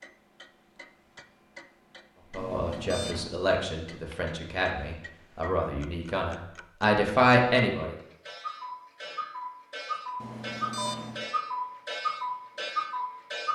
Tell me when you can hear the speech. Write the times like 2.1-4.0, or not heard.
2.3-8.0.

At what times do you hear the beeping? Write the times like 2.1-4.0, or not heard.
2.4-3.4, 10.2-11.2.